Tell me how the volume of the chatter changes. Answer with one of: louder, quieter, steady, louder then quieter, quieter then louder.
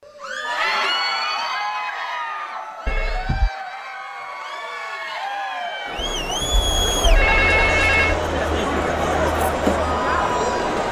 quieter then louder.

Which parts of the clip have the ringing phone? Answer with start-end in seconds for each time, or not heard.
2.9-3.5, 6.0-8.2.